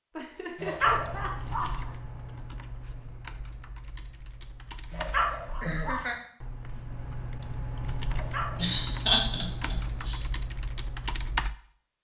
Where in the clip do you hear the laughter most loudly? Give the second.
9 s.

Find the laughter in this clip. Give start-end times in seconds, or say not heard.
0.1-1.9, 5.2-6.2, 8.6-10.2.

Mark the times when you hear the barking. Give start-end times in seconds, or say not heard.
0.6-1.8, 4.9-6.2, 8.1-9.3.